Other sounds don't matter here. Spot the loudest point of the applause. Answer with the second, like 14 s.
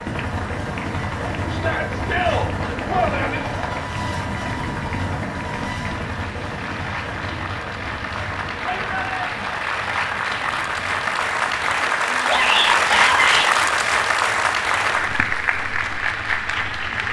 13 s.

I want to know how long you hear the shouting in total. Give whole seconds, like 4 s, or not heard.
4 s.